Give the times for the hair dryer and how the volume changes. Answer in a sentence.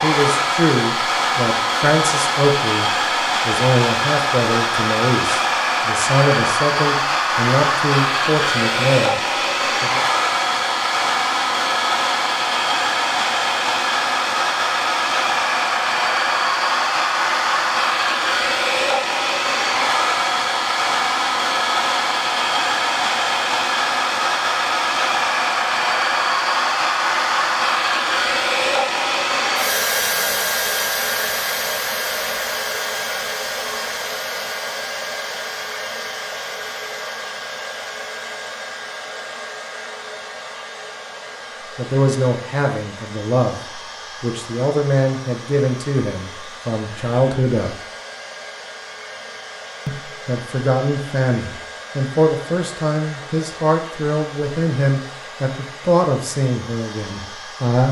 You can hear the hair dryer from 0.0 to 57.8 s, getting quieter.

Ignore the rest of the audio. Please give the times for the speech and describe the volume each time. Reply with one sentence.
You can hear the speech from 0.0 to 10.0 s, at a steady volume; from 41.8 to 47.8 s, at a steady volume; and from 49.9 to 57.8 s, at a steady volume.